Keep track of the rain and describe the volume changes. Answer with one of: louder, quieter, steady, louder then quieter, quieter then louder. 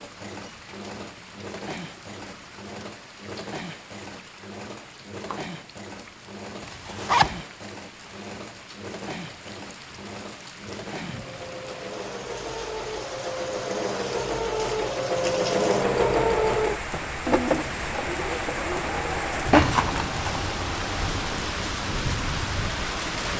louder.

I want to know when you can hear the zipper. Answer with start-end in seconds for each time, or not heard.
6.6-7.4, 19.5-20.5.